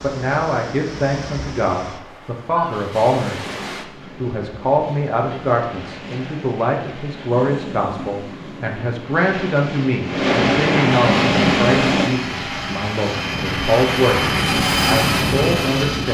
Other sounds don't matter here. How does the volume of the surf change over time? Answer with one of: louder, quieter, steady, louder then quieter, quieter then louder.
louder.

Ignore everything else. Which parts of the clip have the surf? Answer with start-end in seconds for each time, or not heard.
0.0-12.1.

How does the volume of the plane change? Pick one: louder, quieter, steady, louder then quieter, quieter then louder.
louder.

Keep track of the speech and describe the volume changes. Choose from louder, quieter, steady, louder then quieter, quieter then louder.
steady.